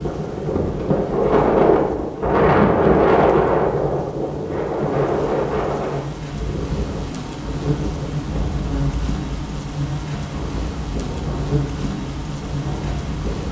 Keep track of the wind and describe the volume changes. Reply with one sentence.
The volume of the wind goes down.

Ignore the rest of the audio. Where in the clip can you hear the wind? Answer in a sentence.
The wind can be heard from 0.0 to 13.4 s.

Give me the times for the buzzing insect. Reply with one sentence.
The buzzing insect can be heard from 0.0 to 13.4 s.